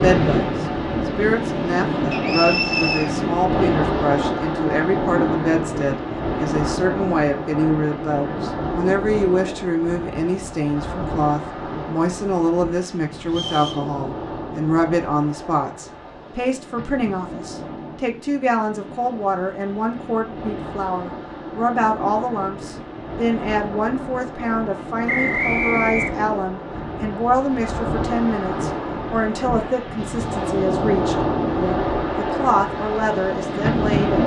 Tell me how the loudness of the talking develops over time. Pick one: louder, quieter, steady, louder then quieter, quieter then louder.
steady.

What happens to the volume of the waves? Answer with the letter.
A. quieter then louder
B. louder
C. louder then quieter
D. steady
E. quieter
A.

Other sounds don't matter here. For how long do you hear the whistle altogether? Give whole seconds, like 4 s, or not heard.
3 s.